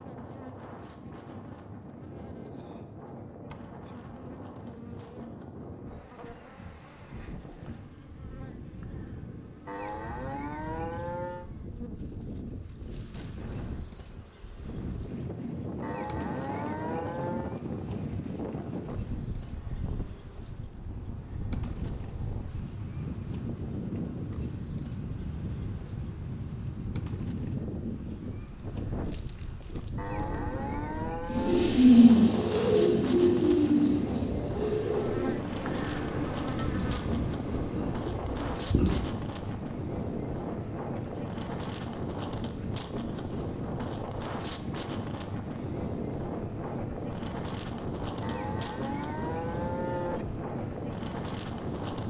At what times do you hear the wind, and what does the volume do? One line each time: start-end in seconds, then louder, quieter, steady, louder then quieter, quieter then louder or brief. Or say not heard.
0.0-52.0 louder.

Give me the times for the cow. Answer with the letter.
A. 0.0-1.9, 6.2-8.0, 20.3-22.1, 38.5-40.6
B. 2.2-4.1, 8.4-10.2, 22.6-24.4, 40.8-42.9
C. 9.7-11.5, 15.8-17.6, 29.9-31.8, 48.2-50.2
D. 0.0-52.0
C.